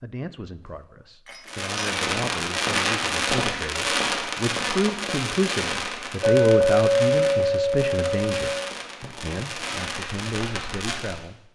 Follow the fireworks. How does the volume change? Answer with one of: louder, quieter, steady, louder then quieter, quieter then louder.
quieter.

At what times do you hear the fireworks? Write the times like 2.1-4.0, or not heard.
1.4-11.2.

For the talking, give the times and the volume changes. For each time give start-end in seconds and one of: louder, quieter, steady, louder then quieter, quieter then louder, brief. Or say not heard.
0.0-11.5 louder then quieter.